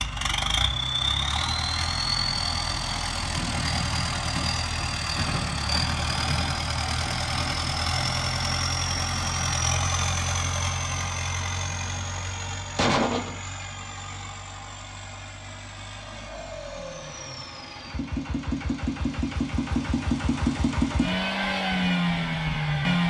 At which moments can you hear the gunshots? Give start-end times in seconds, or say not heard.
11.8-13.4.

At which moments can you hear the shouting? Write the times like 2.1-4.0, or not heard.
not heard.